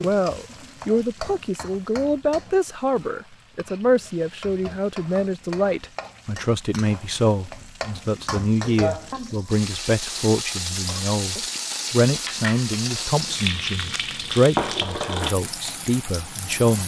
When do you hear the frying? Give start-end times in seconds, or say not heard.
0.0-16.8.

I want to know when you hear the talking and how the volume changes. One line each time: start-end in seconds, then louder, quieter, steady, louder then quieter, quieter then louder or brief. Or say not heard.
0.0-16.8 steady.